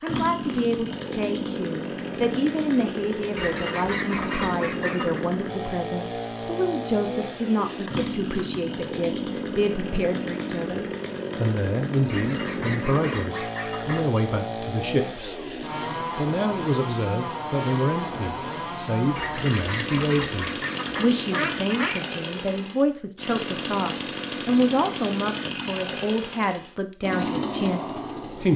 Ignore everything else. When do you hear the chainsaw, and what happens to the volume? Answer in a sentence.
You can hear the chainsaw from 0.0 to 28.5 s, at a steady volume.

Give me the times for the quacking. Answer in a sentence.
The quacking can be heard from 3.4 to 5.2 s, from 12.1 to 14.2 s and from 19.1 to 22.1 s.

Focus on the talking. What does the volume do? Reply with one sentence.
The volume of the talking stays about the same.